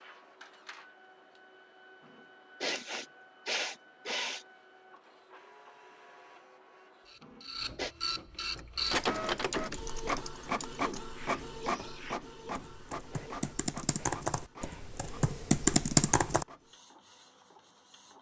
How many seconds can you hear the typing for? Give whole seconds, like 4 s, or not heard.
8 s.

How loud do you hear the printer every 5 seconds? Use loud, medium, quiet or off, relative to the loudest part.
quiet, loud, loud, quiet.